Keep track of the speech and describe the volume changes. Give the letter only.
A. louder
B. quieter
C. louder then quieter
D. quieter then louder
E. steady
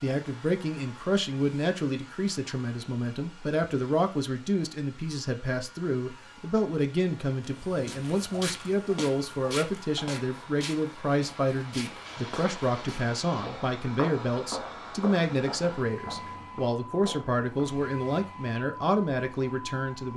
E.